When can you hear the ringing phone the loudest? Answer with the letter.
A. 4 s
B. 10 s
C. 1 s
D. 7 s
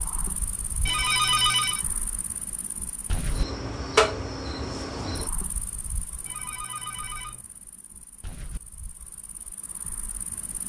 C.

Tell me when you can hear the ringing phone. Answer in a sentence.
The ringing phone can be heard from 0.8 to 1.9 s and from 6.2 to 7.5 s.